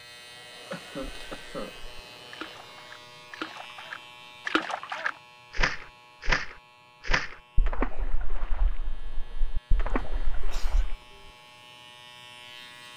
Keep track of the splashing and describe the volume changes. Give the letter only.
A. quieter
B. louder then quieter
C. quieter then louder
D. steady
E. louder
B.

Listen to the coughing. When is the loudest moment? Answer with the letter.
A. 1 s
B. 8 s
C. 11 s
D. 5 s
A.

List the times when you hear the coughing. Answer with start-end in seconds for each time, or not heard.
0.7-1.7, 9.8-11.3.